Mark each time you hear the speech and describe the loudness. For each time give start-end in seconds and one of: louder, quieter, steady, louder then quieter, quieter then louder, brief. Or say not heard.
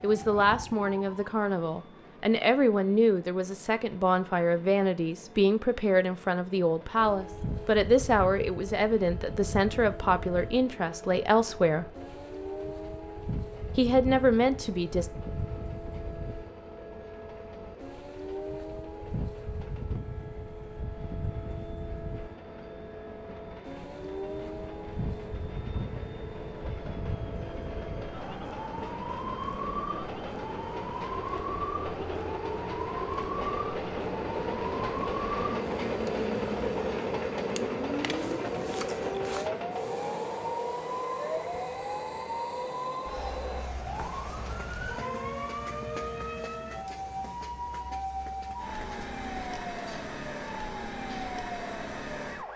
0.0-11.9 steady
13.8-15.1 brief.